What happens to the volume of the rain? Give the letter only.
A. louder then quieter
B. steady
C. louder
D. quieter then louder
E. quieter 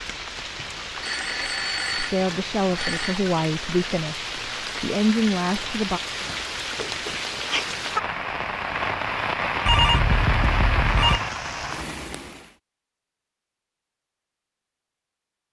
C.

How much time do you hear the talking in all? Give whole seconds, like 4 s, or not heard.
4 s.